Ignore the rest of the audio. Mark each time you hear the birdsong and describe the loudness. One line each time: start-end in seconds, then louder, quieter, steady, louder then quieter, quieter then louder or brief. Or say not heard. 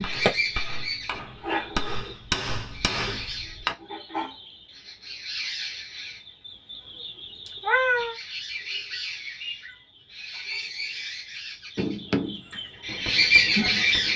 0.0-14.1 quieter then louder.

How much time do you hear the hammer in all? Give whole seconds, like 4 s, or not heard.
6 s.